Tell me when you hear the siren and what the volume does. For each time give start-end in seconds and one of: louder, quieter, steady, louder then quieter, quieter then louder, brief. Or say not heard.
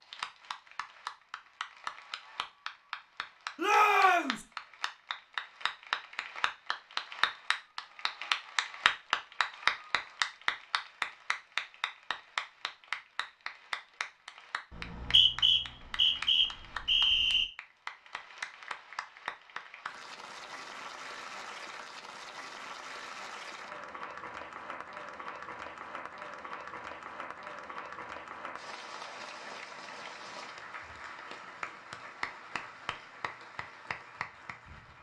not heard.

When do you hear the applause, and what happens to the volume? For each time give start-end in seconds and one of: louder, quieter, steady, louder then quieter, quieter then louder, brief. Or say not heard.
0.0-34.9 louder then quieter.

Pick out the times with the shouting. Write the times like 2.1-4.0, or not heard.
3.5-4.5.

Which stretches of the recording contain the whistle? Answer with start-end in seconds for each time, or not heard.
14.7-17.4.